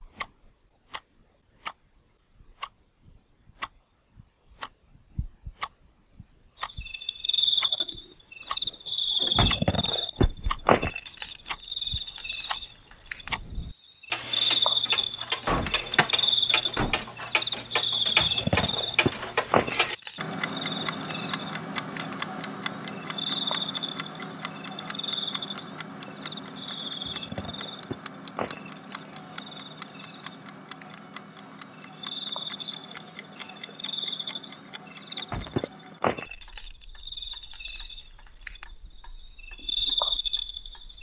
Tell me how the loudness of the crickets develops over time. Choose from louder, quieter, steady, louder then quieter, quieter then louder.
quieter then louder.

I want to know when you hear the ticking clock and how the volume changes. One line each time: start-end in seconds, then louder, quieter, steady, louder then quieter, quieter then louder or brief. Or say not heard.
0.0-40.9 louder then quieter.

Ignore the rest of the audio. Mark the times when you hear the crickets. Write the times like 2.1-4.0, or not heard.
6.6-40.9.